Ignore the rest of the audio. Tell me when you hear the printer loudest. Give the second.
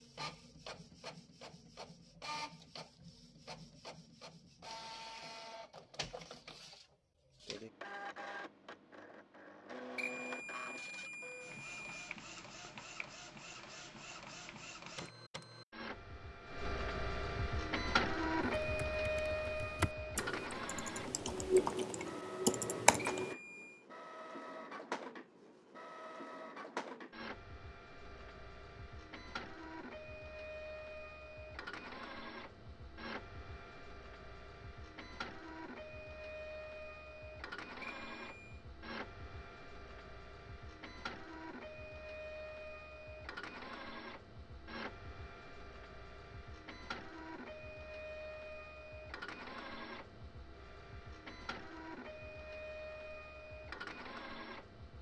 18 s.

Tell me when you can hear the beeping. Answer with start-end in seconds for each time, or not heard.
9.9-12.1, 23.1-23.9, 37.8-38.6.